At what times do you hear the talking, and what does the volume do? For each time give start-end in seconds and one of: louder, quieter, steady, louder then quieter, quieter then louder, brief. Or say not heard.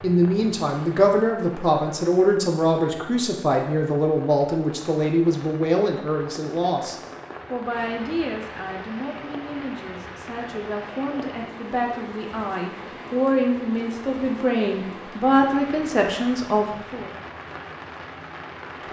0.0-17.1 quieter then louder.